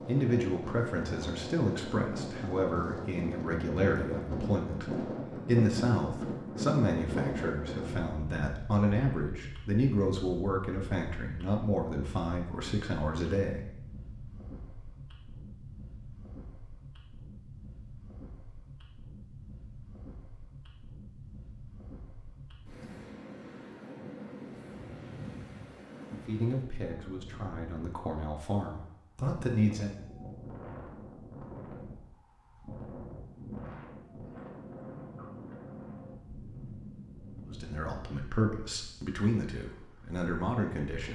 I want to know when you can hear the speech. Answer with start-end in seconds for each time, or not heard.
0.1-13.7, 26.2-29.9, 37.5-41.1.